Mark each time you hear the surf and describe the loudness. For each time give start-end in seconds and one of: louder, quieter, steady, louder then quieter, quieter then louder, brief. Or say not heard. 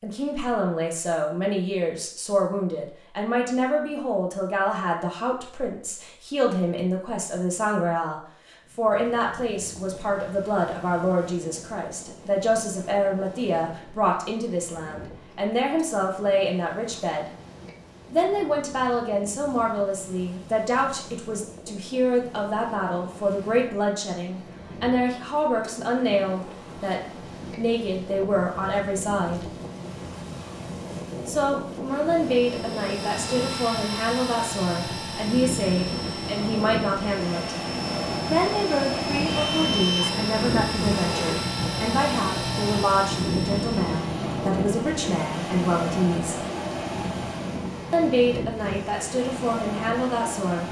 8.6-50.6 louder.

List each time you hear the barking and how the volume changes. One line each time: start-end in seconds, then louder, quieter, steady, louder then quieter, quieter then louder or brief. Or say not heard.
not heard.